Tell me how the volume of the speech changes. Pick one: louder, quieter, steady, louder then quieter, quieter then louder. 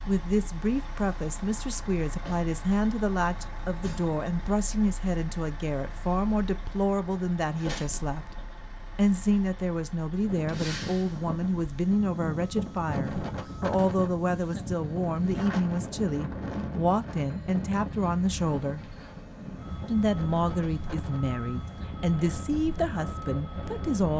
steady.